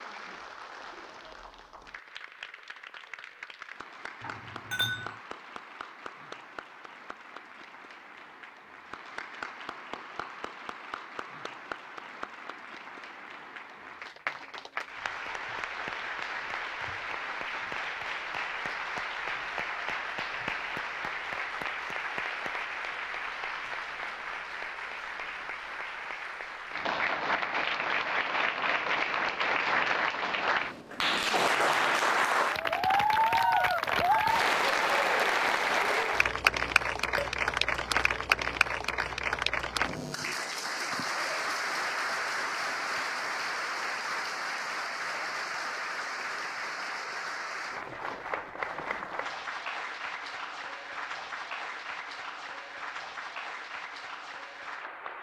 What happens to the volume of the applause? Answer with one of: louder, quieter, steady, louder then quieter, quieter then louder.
louder then quieter.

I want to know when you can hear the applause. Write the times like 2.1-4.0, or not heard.
0.0-55.1.